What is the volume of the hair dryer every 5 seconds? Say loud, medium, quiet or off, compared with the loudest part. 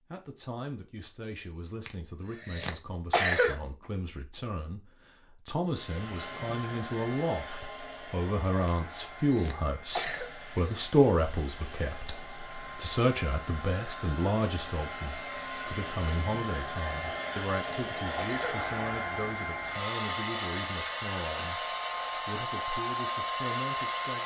off, medium, medium, loud, loud.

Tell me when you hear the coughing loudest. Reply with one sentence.
The loudest moment of the coughing is at 3 seconds.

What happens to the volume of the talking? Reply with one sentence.
The loudness of the talking goes up, then down.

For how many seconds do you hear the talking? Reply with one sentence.
You can hear the talking for 24 seconds altogether.